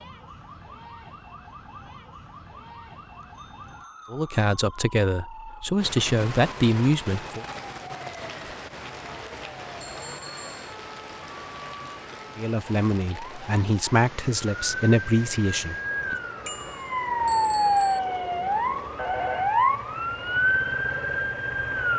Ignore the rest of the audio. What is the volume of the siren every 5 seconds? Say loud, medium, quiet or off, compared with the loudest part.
quiet, quiet, quiet, loud, loud.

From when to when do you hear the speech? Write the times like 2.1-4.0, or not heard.
4.1-7.5, 12.3-16.1.